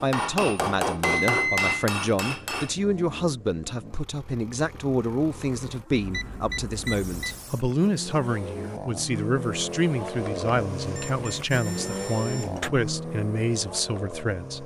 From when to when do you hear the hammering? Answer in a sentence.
The hammering can be heard from 0.0 to 2.8 s.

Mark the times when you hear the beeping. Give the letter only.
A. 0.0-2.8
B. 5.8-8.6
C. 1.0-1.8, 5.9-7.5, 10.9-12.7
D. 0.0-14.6
C.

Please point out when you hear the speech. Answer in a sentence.
The speech can be heard from 0.0 to 14.6 s.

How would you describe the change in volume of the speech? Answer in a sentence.
The loudness of the speech stays about the same.